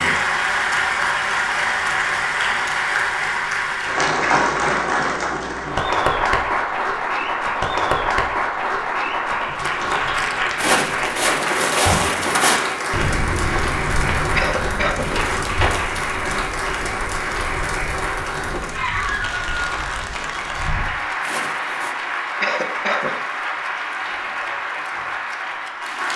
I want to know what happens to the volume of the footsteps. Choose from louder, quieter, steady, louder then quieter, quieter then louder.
quieter.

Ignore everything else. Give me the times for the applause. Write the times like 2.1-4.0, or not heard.
0.0-26.1.